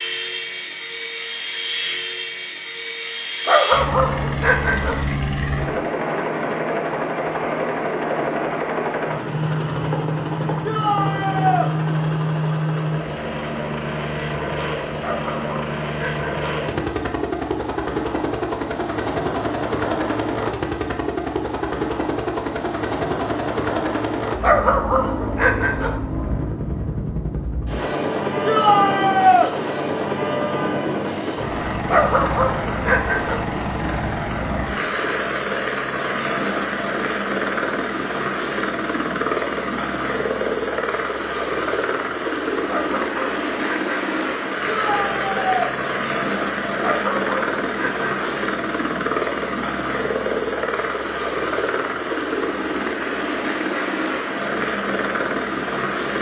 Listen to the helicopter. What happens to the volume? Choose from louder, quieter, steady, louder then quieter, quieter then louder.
steady.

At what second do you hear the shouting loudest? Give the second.
29 s.